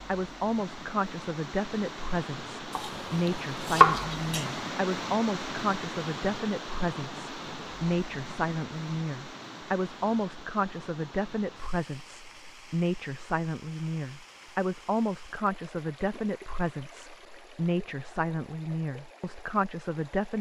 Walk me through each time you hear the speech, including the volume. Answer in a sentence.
You can hear the speech from 0.1 to 20.3 s, at a steady volume.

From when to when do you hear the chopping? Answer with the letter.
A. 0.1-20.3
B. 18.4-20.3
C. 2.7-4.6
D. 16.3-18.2
C.